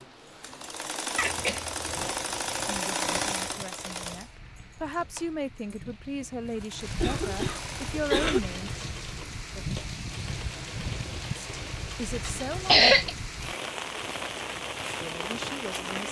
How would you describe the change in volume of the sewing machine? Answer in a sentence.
The volume of the sewing machine goes down.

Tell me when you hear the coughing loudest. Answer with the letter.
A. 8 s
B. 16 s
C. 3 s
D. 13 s
D.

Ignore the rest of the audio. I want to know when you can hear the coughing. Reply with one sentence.
The coughing can be heard from 1.1 to 2.1 s, from 6.8 to 8.4 s and from 12.2 to 13.2 s.